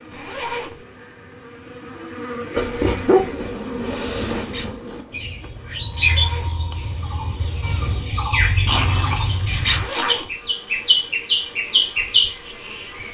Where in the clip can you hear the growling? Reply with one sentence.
You can hear the growling from 2.5 to 3.5 s and from 8.7 to 10.2 s.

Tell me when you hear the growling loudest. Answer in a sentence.
The loudest moment of the growling is at 3 seconds.